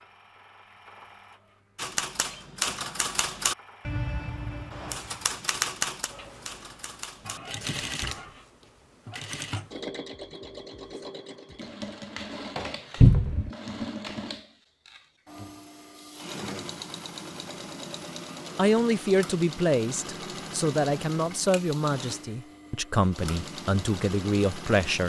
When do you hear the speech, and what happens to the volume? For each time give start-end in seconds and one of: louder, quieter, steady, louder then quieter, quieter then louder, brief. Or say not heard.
18.6-25.0 steady.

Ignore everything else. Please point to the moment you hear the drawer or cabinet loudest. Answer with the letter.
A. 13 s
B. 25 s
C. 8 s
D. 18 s
A.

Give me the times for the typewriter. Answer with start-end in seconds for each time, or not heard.
1.8-8.2.